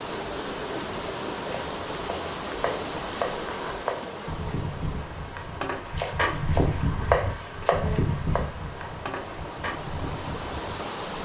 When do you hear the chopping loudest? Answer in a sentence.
The volume of the chopping peaks at 7 seconds.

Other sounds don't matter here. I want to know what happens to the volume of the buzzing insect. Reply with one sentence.
The volume of the buzzing insect goes up, then down.